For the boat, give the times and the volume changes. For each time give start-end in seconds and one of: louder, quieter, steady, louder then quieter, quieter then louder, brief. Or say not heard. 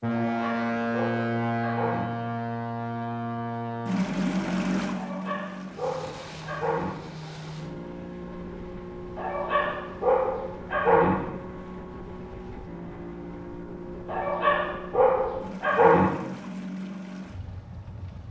0.0-18.2 quieter.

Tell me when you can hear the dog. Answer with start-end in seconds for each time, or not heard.
0.2-2.1, 4.9-7.0, 9.2-11.2, 14.1-16.1.